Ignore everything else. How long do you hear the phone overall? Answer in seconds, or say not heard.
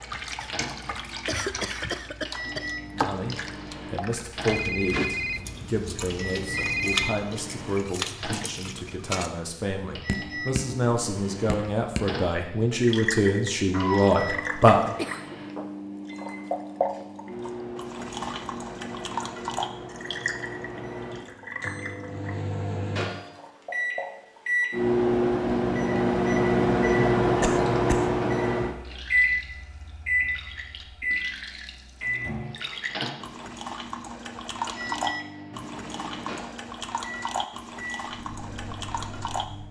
3 s.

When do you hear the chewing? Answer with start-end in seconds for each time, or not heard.
not heard.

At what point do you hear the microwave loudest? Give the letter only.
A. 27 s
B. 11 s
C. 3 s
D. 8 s
A.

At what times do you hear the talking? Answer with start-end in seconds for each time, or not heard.
2.9-14.8.